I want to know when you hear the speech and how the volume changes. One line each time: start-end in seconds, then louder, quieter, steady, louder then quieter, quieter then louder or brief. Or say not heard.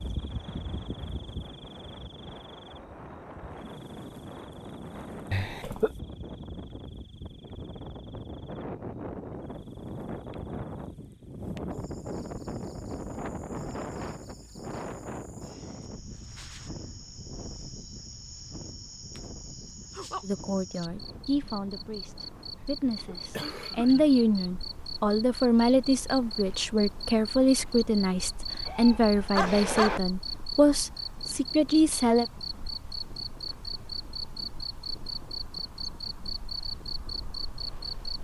20.2-32.2 louder.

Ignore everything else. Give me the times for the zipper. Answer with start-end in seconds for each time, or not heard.
not heard.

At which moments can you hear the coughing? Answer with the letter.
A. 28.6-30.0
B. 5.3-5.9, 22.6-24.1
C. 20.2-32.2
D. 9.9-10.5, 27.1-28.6
B.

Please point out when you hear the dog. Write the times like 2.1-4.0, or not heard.
28.6-30.0.